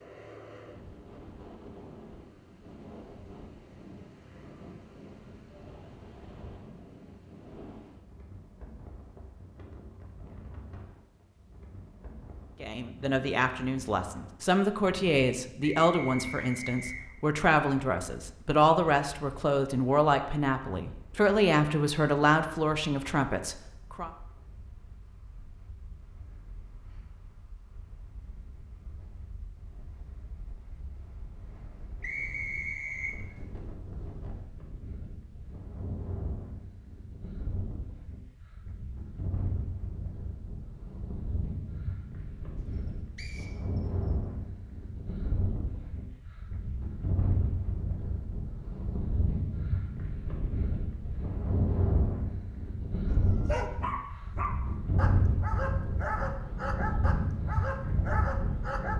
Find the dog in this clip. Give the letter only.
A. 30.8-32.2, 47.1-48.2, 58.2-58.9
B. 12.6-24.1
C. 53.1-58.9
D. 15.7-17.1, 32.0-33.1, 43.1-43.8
C.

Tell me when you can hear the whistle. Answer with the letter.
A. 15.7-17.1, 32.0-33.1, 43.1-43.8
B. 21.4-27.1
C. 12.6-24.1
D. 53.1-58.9
A.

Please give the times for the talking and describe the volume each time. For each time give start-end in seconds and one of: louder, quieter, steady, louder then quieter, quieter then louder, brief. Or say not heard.
12.6-24.1 steady.